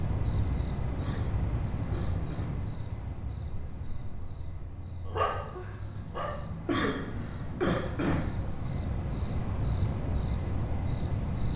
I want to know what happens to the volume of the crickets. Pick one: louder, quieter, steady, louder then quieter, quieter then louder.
quieter then louder.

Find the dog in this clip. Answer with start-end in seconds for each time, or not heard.
5.0-6.3.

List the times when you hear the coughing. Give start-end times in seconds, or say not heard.
0.9-2.6, 6.7-8.2.